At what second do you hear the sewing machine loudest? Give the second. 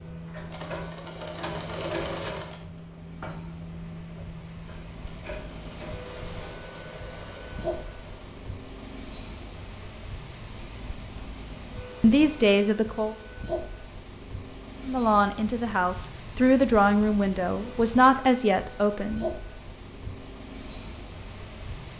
2 s.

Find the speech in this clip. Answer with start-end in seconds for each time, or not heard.
12.0-13.2, 14.8-19.2.